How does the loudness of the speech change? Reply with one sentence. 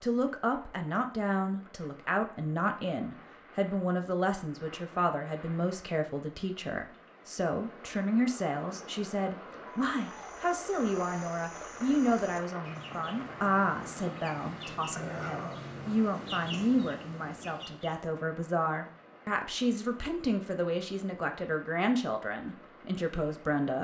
The volume of the speech stays about the same.